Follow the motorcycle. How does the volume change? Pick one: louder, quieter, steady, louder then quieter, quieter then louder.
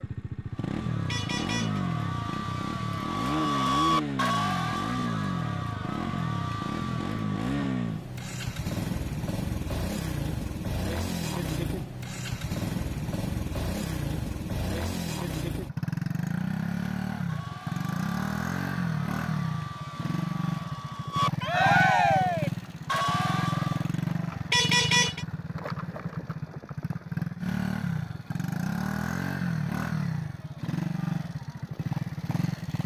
steady.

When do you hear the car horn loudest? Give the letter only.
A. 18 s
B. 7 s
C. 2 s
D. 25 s
D.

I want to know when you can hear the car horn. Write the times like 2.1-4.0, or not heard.
1.1-1.8, 24.5-25.2.